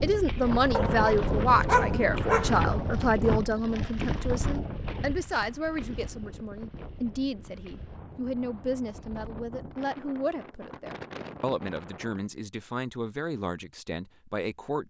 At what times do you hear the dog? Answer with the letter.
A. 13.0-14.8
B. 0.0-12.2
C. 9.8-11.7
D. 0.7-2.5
D.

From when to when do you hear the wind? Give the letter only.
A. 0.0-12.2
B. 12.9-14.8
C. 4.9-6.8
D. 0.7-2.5
A.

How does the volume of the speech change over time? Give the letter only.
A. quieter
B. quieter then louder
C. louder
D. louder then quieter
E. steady
A.